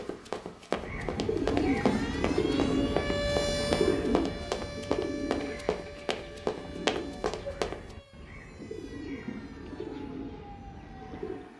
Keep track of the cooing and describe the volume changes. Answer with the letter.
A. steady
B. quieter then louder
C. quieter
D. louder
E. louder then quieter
C.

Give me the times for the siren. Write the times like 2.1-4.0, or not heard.
0.0-11.5.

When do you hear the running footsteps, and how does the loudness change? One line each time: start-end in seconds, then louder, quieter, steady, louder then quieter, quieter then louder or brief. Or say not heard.
0.0-7.8 steady.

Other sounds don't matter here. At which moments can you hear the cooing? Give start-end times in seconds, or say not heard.
0.8-11.5.